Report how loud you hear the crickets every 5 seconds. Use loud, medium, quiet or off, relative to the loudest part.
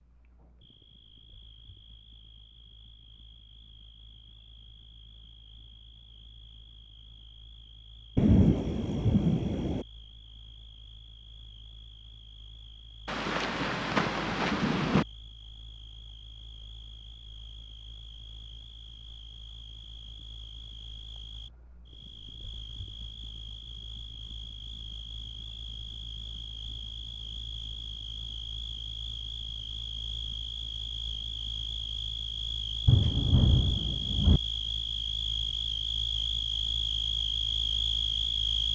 quiet, quiet, quiet, quiet, quiet, medium, medium, loud.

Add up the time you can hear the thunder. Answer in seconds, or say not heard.
5 s.